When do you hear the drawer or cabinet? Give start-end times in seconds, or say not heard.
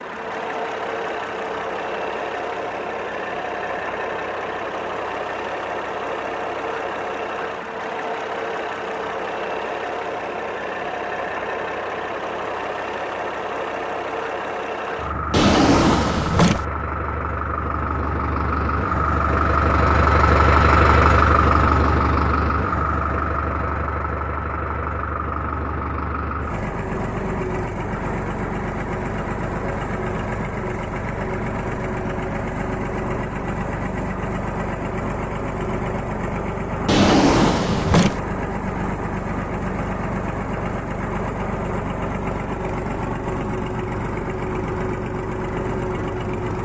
15.3-16.6, 36.9-38.2.